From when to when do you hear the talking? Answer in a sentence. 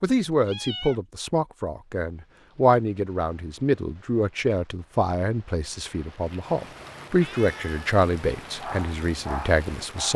You can hear the talking from 0.0 to 10.1 s.